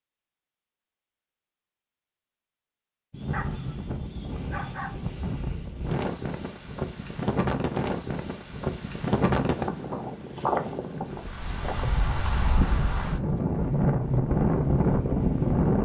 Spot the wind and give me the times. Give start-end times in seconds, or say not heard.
3.1-15.8.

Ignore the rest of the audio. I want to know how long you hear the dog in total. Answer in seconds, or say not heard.
2 s.